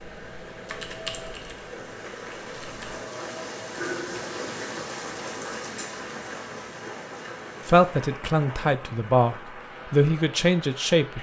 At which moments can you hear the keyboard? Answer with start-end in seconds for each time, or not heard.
0.0-3.0.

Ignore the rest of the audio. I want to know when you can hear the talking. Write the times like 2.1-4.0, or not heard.
7.7-11.1.